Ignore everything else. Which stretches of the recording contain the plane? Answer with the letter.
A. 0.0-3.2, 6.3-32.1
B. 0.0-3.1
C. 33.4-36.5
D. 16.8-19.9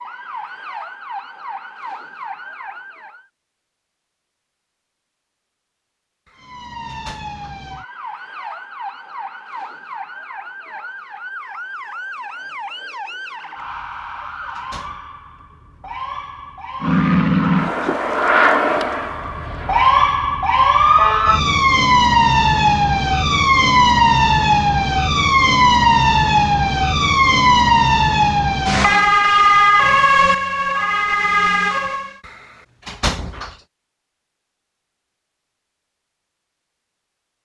D.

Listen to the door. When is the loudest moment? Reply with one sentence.
The loudest moment of the door is at 33 seconds.